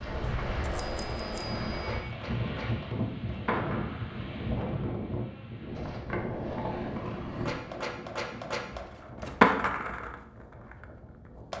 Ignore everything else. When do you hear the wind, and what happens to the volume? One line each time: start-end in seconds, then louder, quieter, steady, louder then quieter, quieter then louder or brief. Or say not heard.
0.0-11.5 quieter.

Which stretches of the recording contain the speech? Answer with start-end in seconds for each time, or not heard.
not heard.